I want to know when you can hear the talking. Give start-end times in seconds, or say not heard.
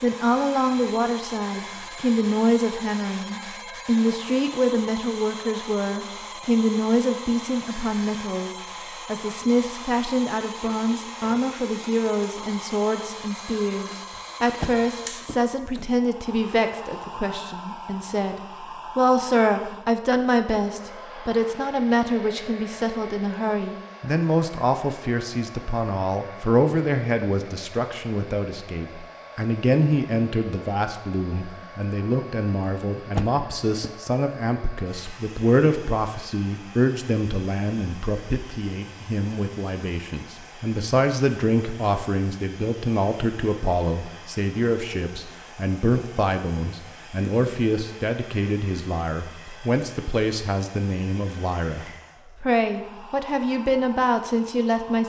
0.0-55.0.